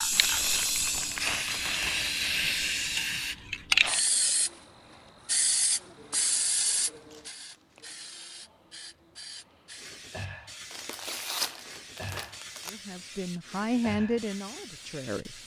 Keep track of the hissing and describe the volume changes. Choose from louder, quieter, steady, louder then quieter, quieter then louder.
quieter.